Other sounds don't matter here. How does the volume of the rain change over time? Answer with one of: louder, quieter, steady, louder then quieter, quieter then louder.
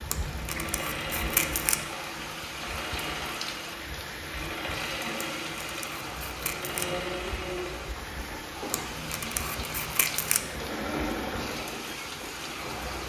steady.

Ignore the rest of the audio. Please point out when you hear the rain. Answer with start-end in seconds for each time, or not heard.
0.0-13.0.